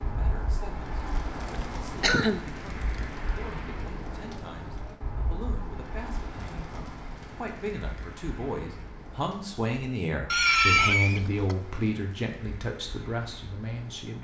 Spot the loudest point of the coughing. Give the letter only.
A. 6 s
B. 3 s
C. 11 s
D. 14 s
C.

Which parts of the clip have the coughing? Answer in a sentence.
You can hear the coughing from 2.0 to 2.5 s and from 10.3 to 11.6 s.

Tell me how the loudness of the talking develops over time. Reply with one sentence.
The volume of the talking goes up.